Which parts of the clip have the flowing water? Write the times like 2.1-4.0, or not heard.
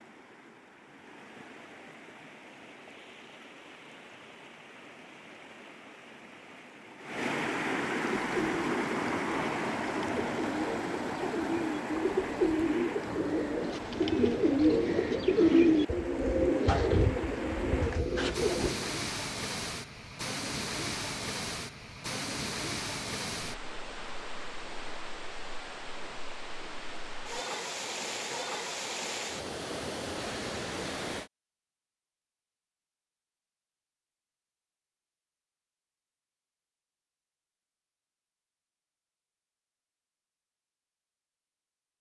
0.0-31.3.